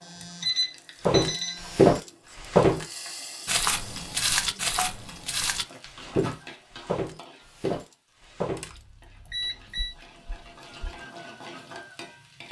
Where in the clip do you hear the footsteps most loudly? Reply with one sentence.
The volume of the footsteps peaks at 2 seconds.